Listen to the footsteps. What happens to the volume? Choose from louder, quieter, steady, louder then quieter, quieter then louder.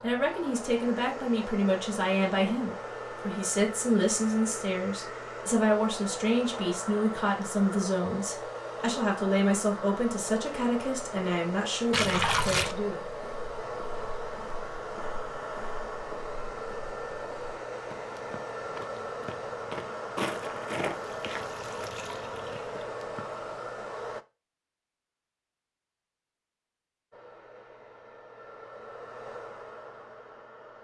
louder then quieter.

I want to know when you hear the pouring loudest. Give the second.
12 s.